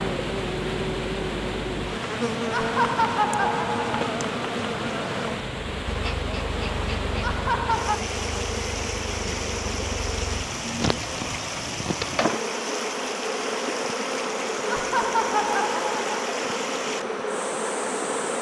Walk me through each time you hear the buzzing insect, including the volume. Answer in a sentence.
You can hear the buzzing insect from 0.0 to 18.3 s, at a steady volume.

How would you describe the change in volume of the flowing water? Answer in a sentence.
The volume of the flowing water stays about the same.